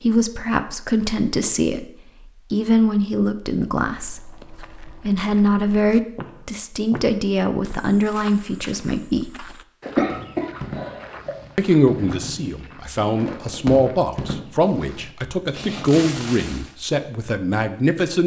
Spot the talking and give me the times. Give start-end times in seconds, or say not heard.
0.0-9.3, 11.6-18.2.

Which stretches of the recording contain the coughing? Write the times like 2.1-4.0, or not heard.
9.8-11.3.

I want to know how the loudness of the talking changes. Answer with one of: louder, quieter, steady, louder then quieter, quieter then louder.
steady.